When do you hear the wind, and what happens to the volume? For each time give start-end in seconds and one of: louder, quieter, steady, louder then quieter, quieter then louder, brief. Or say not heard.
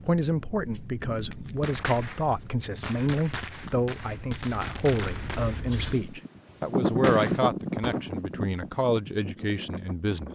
0.0-10.3 louder then quieter.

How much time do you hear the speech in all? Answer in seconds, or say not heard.
10 s.